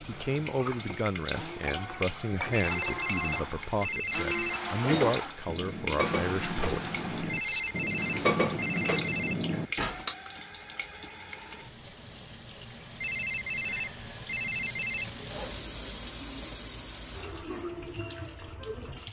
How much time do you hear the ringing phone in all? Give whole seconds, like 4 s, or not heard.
6 s.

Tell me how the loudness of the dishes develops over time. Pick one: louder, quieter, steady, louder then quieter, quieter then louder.
louder.